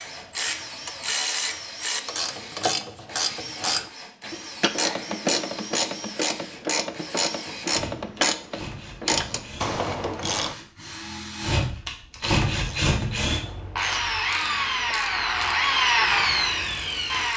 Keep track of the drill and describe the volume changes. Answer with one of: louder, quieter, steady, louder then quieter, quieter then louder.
louder.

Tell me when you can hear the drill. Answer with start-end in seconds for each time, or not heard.
0.0-17.3.